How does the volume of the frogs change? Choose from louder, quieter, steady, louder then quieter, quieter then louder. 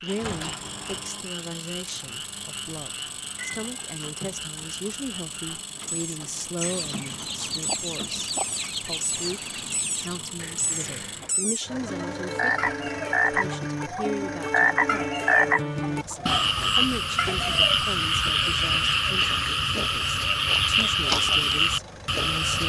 louder.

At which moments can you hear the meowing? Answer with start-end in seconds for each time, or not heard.
3.4-4.0.